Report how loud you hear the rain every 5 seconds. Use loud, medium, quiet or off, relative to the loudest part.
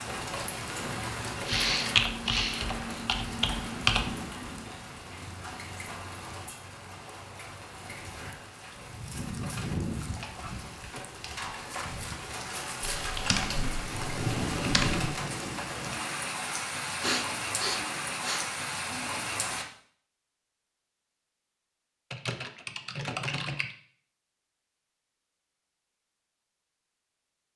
loud, medium, loud, loud, off, off.